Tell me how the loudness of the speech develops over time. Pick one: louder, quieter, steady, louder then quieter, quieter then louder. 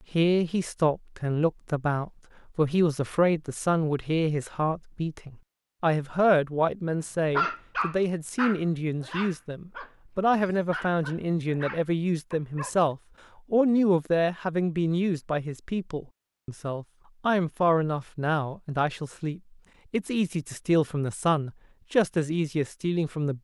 steady.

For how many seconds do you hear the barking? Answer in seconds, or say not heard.
6 s.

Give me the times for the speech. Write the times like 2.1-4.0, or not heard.
0.1-23.3.